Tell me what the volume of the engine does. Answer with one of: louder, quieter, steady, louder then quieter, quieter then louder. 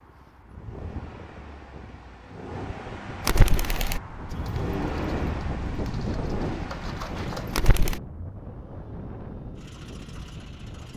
louder then quieter.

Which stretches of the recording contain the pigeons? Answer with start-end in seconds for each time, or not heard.
3.2-8.0.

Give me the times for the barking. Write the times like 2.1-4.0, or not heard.
not heard.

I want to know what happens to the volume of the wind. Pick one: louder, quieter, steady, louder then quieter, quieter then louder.
louder then quieter.